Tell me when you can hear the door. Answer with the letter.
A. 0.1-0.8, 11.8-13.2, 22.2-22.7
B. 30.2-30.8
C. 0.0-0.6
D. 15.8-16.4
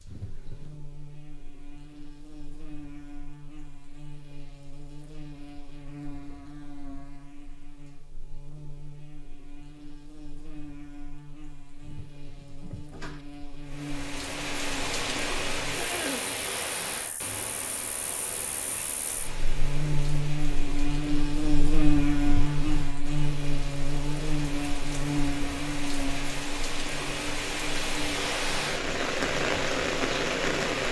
A.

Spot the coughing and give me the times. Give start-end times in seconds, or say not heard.
15.8-16.4.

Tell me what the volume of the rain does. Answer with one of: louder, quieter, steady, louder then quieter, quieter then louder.
quieter then louder.